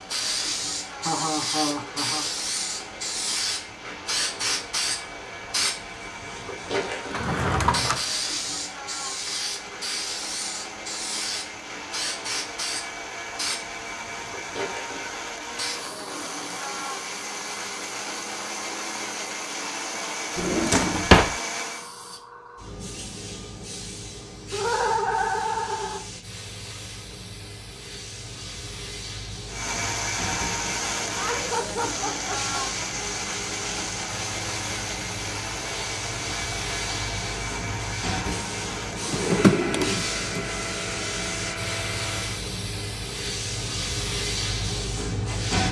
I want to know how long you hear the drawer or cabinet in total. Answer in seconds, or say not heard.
3 s.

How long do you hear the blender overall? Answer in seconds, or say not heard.
35 s.